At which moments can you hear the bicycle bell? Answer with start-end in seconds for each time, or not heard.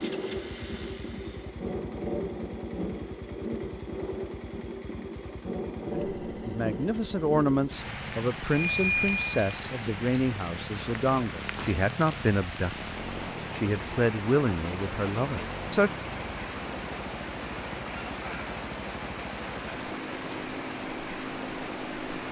8.5-9.4.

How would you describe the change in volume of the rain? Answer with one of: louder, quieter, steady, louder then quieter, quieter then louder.
steady.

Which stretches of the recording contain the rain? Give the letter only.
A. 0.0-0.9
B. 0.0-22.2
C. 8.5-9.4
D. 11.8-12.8
B.